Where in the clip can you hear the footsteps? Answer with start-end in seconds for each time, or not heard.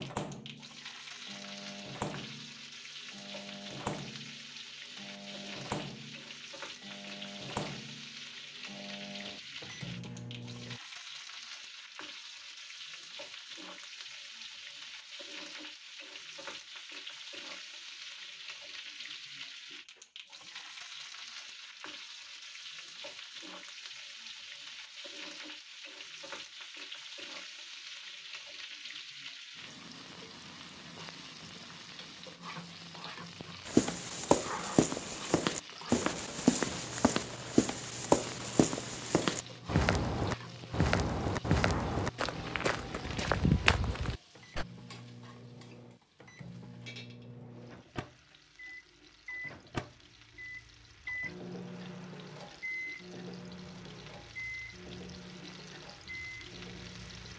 33.6-44.6.